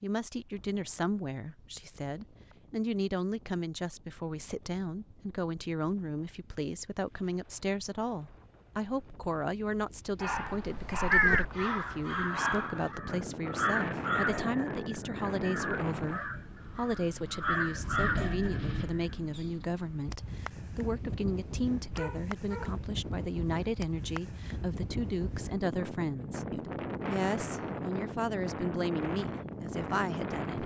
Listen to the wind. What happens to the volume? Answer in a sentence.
The loudness of the wind goes up.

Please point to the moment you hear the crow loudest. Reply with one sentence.
The loudest moment of the crow is at 11 seconds.